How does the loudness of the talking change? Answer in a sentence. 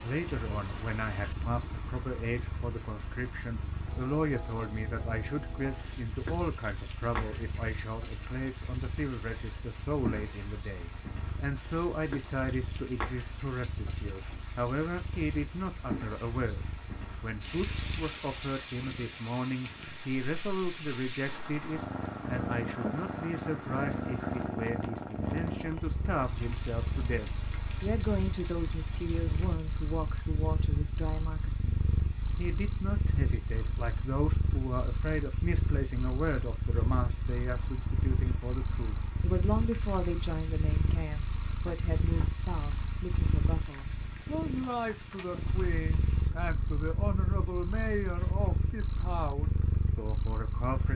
The loudness of the talking stays about the same.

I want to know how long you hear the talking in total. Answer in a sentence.
The talking can be heard for 51 seconds in total.